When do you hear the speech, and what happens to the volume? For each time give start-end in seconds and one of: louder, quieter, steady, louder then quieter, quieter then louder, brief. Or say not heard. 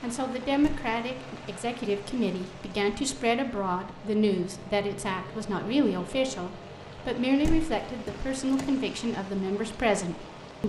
0.0-10.6 steady.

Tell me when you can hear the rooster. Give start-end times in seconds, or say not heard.
not heard.